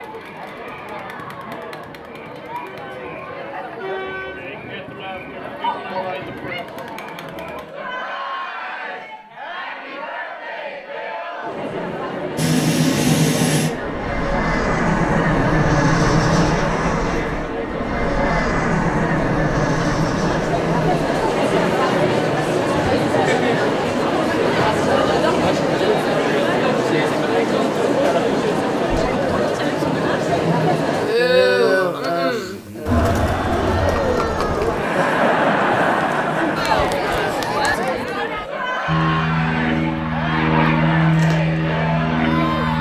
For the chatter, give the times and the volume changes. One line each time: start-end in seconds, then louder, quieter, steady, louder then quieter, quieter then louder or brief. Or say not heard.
0.0-42.7 louder.